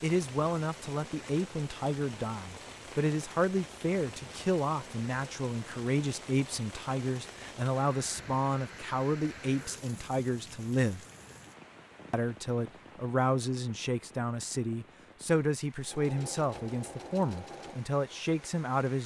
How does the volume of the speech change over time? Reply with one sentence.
The loudness of the speech stays about the same.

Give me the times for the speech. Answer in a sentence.
The speech can be heard from 0.0 to 11.1 s and from 12.1 to 19.0 s.